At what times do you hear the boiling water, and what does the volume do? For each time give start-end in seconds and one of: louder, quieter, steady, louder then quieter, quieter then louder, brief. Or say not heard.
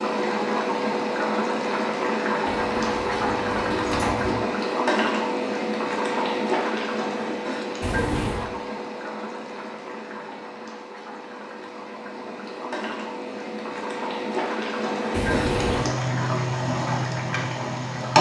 0.0-18.1 quieter then louder.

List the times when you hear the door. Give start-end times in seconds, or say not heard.
2.5-4.3, 7.8-8.5, 15.1-15.9.